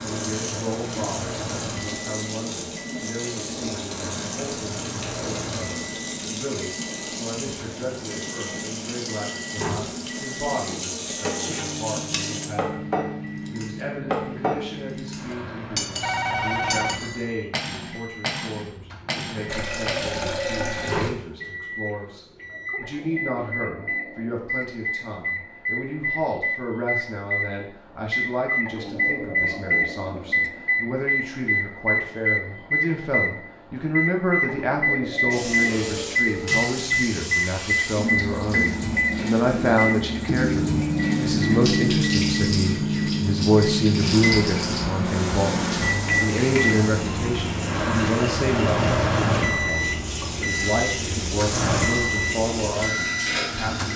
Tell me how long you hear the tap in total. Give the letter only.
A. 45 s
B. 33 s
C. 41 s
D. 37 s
B.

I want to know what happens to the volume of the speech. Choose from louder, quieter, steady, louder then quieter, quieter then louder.
louder.